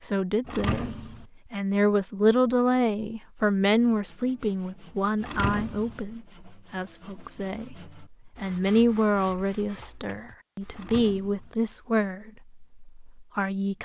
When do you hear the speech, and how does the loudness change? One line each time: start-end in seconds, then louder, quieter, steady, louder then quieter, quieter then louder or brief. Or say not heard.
0.0-13.7 quieter then louder.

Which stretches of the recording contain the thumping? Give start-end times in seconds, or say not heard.
0.5-1.2, 5.2-6.0, 10.7-11.6.